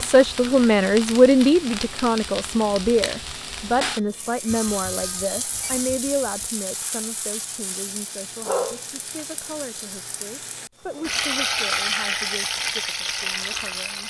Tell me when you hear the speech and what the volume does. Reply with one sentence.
The speech can be heard from 0.0 to 14.0 s, getting quieter.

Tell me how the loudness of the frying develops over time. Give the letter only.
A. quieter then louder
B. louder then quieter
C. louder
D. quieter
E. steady
C.